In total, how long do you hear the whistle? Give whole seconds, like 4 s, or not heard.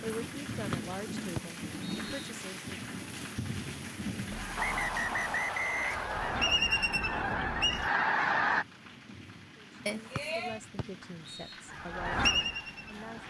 5 s.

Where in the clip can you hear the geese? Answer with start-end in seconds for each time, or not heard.
4.3-8.7, 11.7-13.2.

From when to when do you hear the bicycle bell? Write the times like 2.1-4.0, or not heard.
9.8-10.6.